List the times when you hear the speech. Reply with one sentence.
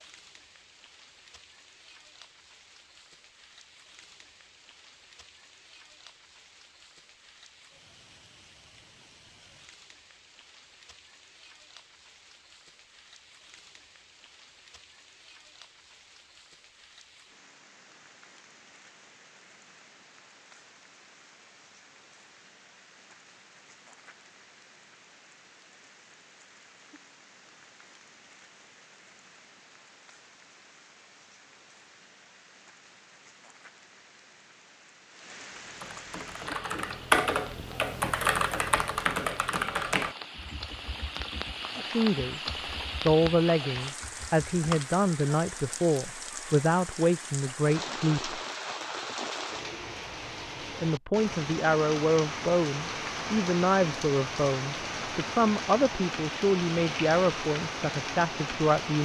You can hear the speech from 41.8 to 48.4 s and from 50.6 to 59.0 s.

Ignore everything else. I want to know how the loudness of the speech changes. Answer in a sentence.
The loudness of the speech stays about the same.